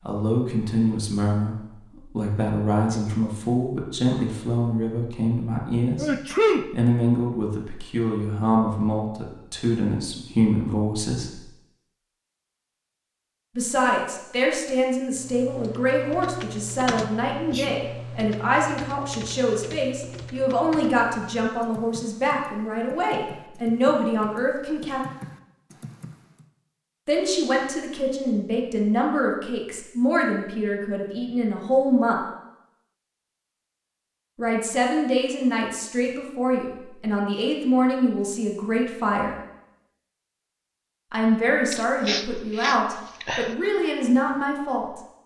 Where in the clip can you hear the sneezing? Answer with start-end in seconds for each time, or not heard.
6.0-6.7, 17.4-17.8, 41.7-43.5.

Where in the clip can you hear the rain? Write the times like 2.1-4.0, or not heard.
not heard.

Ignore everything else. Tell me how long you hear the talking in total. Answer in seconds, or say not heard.
37 s.